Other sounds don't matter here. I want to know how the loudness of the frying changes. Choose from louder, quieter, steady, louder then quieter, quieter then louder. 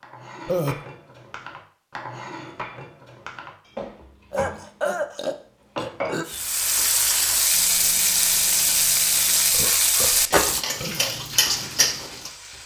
quieter.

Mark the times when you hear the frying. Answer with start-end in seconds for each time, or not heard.
6.2-12.6.